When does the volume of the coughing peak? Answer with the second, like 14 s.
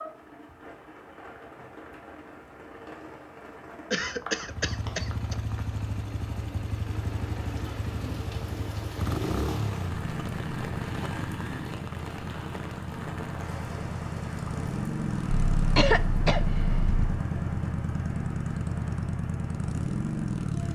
16 s.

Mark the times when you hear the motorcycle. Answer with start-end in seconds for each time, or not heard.
4.4-20.6.